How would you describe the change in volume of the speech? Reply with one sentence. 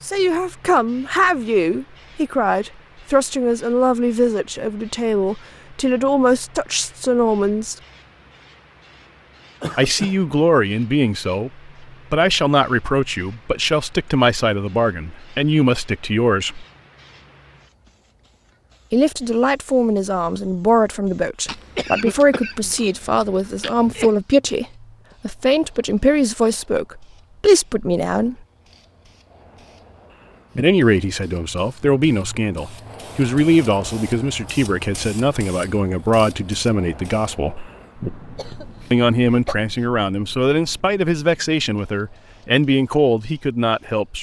The loudness of the speech stays about the same.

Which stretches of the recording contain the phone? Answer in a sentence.
The phone can't be heard in this clip.